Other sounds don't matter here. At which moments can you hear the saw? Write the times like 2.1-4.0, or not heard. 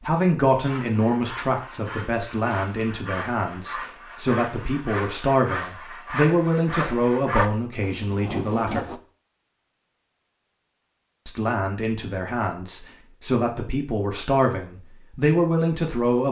0.6-9.0.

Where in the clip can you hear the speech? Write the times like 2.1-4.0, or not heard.
0.0-8.9, 11.2-16.2.